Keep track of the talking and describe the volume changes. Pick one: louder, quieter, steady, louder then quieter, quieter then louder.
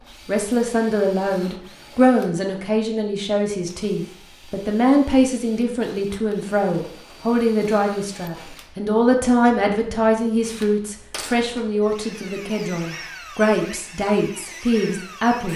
steady.